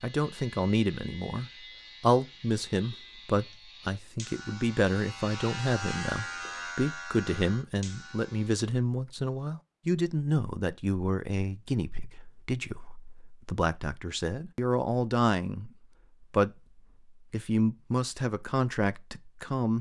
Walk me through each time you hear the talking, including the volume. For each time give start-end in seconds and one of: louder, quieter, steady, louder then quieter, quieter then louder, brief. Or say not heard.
0.0-19.7 steady.